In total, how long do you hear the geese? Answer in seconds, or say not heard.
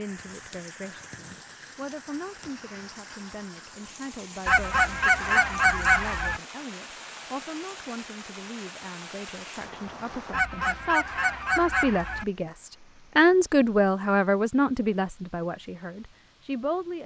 4 s.